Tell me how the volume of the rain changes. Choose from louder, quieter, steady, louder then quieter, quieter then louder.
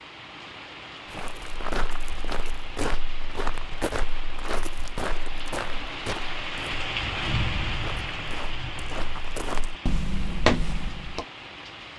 louder then quieter.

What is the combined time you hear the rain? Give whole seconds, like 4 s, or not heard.
12 s.